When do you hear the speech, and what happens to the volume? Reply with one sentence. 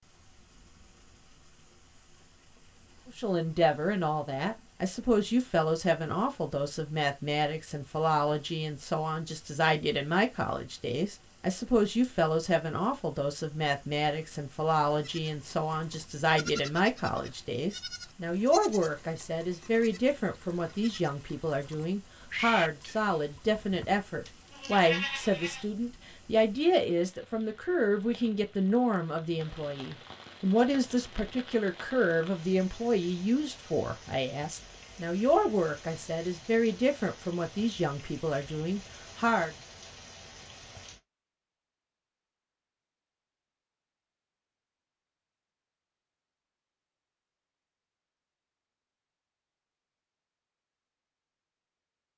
You can hear the speech from 3.1 to 39.5 s, at a steady volume.